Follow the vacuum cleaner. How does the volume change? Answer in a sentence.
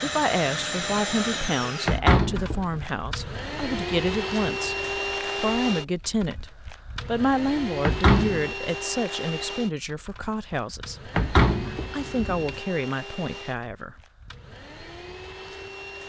The volume of the vacuum cleaner goes down.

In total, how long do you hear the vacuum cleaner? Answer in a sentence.
The vacuum cleaner can be heard for 16 seconds in total.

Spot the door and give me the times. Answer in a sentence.
You can hear the door from 1.9 to 2.8 s, from 7.8 to 8.5 s and from 11.2 to 12.6 s.